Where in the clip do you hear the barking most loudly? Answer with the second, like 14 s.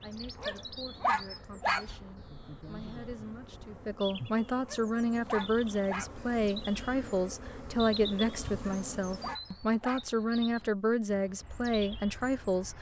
1 s.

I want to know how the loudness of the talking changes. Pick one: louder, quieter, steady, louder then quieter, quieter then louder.
louder.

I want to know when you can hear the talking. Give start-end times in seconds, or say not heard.
0.0-12.7.